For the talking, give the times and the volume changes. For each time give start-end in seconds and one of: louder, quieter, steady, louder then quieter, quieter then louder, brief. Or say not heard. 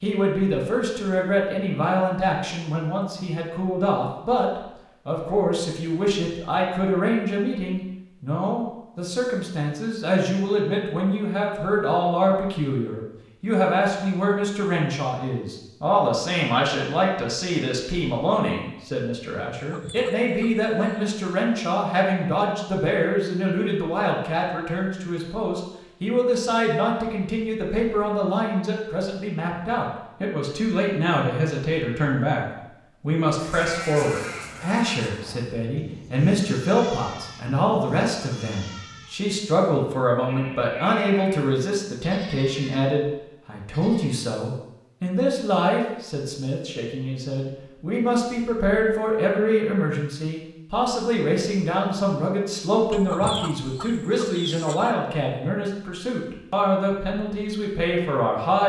0.0-58.6 steady.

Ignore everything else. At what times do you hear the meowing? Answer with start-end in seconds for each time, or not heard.
not heard.